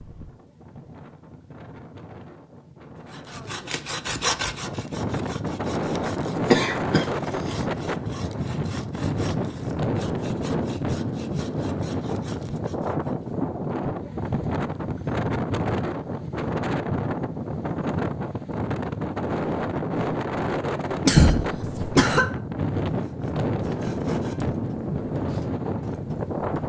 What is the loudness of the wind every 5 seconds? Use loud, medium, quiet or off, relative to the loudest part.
quiet, loud, loud, loud, loud, loud.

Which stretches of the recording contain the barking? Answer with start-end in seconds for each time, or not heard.
not heard.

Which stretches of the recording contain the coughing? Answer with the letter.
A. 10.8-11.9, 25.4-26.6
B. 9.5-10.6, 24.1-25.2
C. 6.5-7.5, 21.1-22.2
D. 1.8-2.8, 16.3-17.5
C.